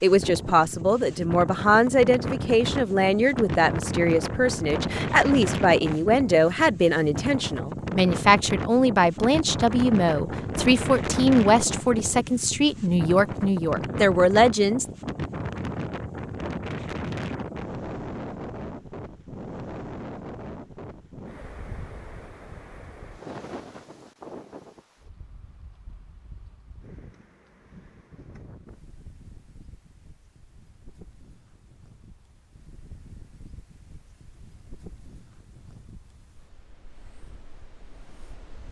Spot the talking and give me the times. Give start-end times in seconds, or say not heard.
0.0-14.8.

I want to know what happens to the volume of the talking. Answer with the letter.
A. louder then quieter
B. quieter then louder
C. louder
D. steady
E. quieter
D.